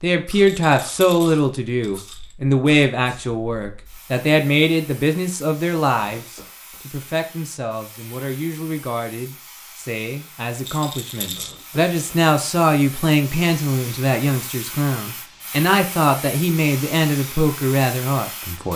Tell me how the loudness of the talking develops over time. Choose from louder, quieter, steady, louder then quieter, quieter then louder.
quieter then louder.